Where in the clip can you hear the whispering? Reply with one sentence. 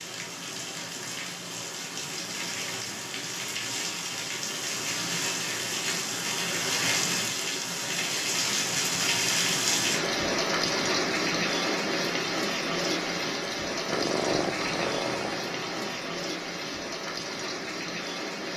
The whispering can't be heard in this clip.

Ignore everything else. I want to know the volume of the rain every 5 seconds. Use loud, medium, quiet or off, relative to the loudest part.
medium, loud, loud, medium.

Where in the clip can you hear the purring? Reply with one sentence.
The purring can be heard from 13.8 to 16.1 s.